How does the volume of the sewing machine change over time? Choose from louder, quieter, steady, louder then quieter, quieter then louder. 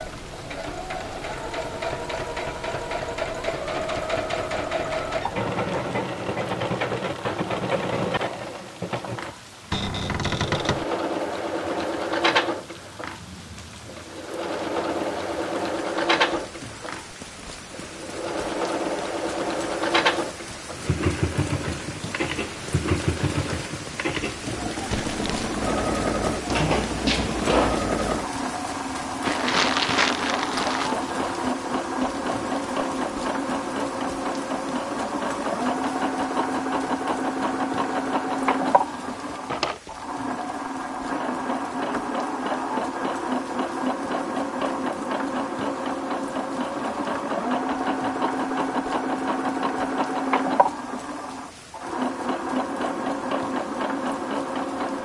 steady.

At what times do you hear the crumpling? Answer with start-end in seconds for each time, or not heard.
24.9-25.6, 29.2-30.9.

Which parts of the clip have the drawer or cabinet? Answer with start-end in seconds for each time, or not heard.
9.7-10.8, 26.4-27.8, 39.3-39.8.